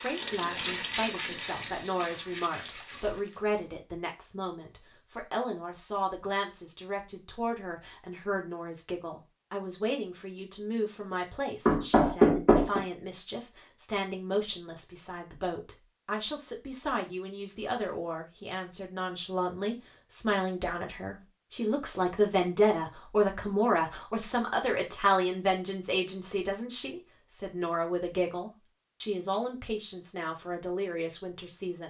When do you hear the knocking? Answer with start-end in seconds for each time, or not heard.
11.7-12.8.